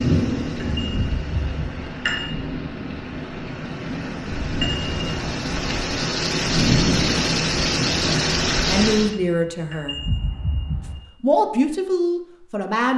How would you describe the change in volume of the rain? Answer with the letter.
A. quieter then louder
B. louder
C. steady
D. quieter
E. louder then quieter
B.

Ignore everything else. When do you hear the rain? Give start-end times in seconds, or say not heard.
0.0-9.2.